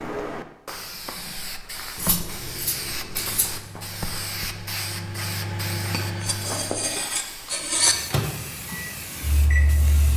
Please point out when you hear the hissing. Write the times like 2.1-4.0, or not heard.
0.0-10.1.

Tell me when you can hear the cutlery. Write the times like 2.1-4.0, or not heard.
1.9-3.6, 5.9-8.0.